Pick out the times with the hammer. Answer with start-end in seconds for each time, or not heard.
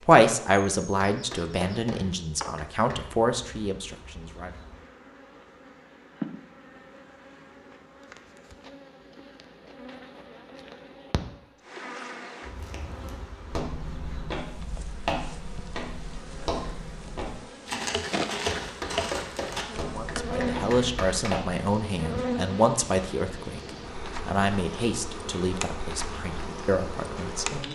1.1-3.1, 18.5-21.4.